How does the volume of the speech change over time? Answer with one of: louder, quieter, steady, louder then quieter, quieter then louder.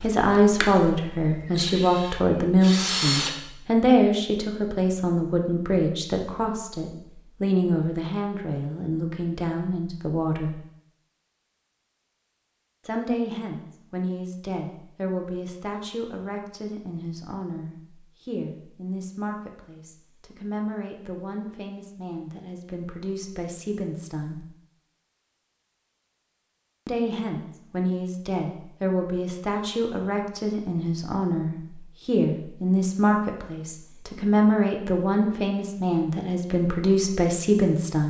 quieter then louder.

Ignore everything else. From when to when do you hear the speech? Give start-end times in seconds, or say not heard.
0.0-10.6, 12.8-24.4, 26.9-38.0.